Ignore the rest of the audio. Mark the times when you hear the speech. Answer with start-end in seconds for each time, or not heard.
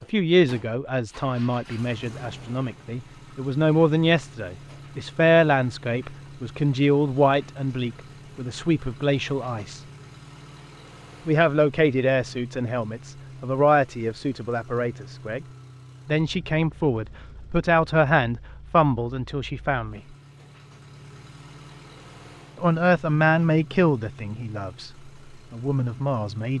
0.0-9.8, 11.2-15.4, 16.1-20.0, 22.6-26.5.